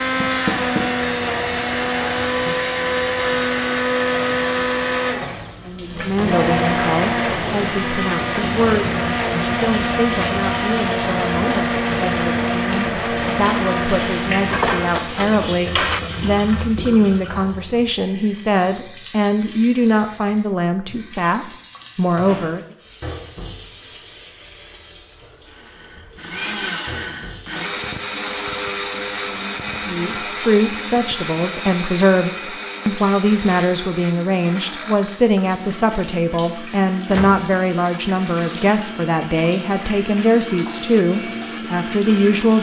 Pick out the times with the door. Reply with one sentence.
You can hear the door from 0.2 to 0.8 s, from 21.8 to 22.8 s and from 37.0 to 37.5 s.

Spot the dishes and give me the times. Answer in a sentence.
The dishes can be heard from 14.4 to 16.0 s.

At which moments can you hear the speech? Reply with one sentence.
You can hear the speech from 5.7 to 22.6 s and from 29.9 to 42.5 s.